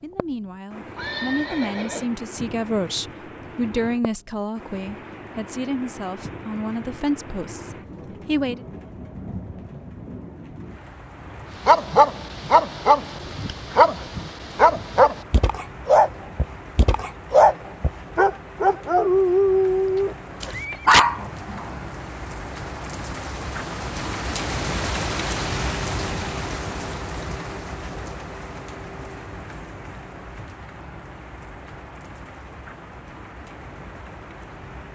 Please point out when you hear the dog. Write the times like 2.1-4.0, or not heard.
11.7-21.8.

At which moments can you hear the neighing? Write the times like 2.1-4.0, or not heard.
0.9-2.1, 19.9-20.9.